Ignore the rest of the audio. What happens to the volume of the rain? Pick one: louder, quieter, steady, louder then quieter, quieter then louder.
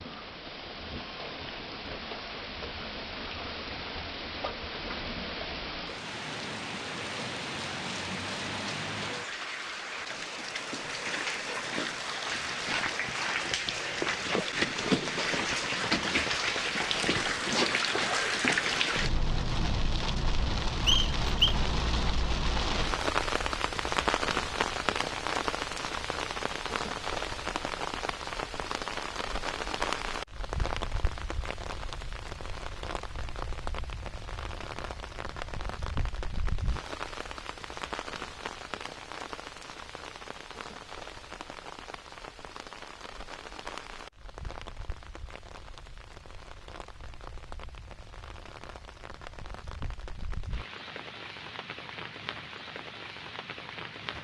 louder then quieter.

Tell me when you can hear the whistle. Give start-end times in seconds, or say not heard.
20.9-21.6.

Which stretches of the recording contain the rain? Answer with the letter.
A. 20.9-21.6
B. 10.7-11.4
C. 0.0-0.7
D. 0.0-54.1
D.